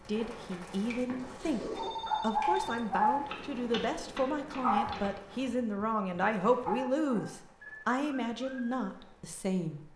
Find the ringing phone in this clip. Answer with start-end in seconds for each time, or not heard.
0.9-2.9.